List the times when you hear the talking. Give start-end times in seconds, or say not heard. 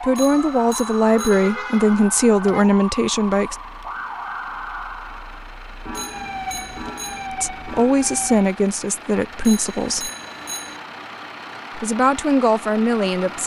0.0-3.5, 7.3-10.1, 11.8-13.4.